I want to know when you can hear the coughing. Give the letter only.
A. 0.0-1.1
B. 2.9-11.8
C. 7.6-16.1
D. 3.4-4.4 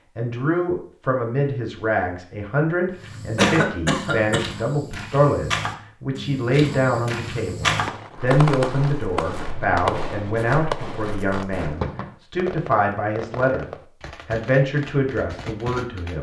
D.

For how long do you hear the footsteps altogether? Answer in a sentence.
The footsteps can be heard for 9 seconds in total.